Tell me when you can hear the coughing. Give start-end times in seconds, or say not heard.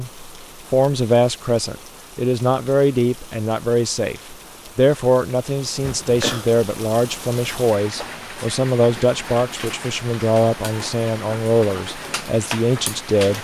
5.8-6.5.